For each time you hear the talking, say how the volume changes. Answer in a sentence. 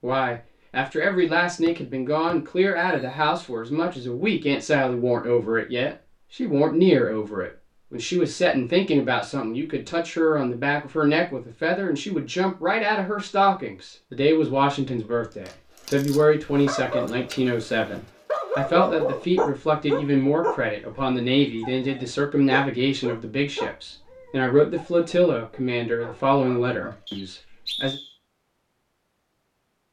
The talking can be heard from 0.0 to 27.9 s, at a steady volume.